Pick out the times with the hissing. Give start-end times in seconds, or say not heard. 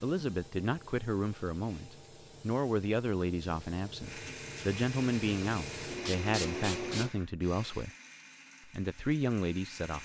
0.0-7.1.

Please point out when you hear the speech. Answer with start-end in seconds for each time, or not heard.
0.0-7.9, 8.7-9.9.